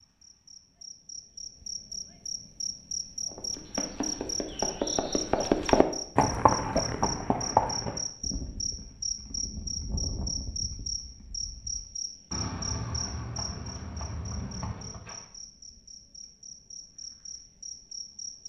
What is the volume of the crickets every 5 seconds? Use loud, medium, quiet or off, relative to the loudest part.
loud, loud, loud, medium.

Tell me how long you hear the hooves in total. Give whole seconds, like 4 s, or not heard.
12 s.